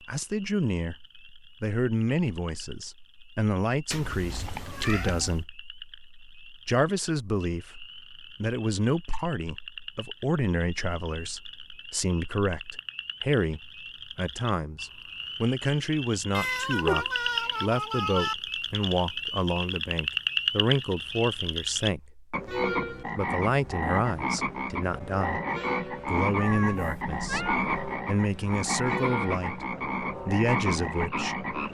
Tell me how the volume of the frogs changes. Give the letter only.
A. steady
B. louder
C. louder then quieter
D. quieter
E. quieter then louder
B.